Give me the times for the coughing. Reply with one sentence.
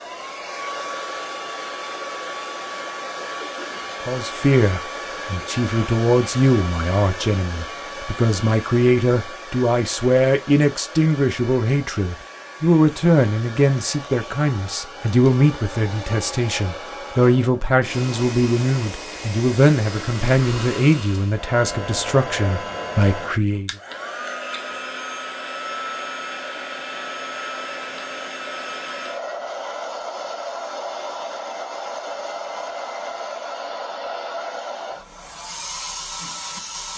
The coughing can be heard from 3.4 to 3.9 s.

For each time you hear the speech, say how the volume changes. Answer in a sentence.
The speech can be heard from 4.0 to 23.7 s, at a steady volume.